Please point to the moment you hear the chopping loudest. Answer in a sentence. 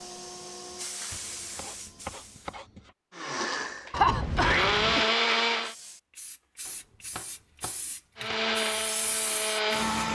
The loudest moment of the chopping is at 2 seconds.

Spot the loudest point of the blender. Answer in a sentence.
The loudest moment of the blender is at 5 seconds.